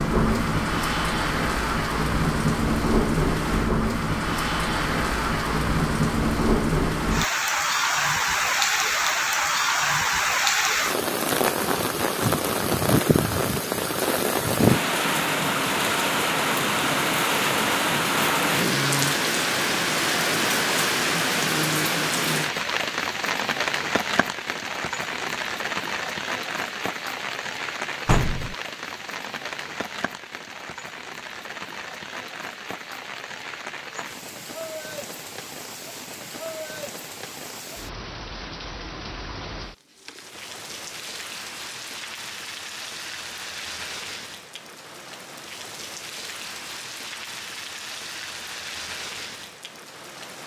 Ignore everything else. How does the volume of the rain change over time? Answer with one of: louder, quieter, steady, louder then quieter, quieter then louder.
quieter.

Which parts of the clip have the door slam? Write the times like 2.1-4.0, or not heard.
28.1-28.6.